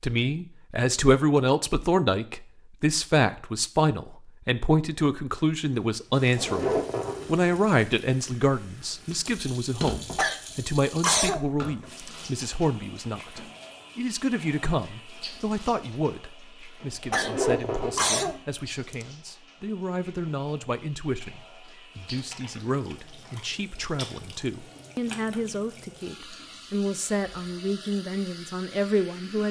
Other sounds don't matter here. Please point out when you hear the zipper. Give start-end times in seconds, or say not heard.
6.3-7.5, 17.1-18.3.